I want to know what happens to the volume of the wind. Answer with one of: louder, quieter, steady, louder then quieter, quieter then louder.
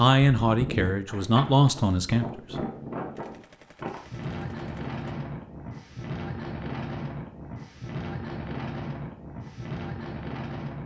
steady.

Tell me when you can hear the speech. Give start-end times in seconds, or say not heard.
0.0-2.5.